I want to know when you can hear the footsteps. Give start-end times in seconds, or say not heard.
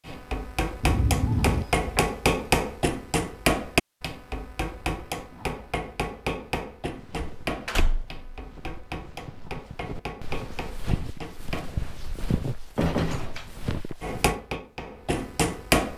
6.9-14.3.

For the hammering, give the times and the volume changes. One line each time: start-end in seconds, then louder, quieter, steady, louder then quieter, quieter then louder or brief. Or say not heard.
0.1-11.8 quieter
14.0-15.9 brief.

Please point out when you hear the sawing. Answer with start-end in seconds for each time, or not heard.
not heard.